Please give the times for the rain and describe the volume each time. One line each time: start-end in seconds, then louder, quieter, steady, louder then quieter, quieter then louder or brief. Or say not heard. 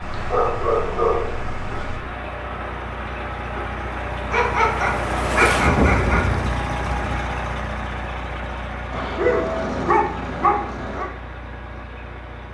0.0-7.3 louder.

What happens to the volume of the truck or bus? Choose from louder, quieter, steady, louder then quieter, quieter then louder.
louder then quieter.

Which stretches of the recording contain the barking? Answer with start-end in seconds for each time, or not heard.
0.0-2.0, 4.3-6.2, 8.9-11.1.